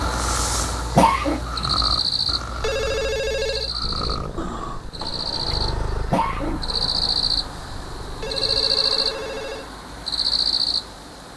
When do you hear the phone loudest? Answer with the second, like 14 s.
3 s.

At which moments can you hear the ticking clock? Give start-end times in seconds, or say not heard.
not heard.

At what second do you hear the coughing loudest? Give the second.
1 s.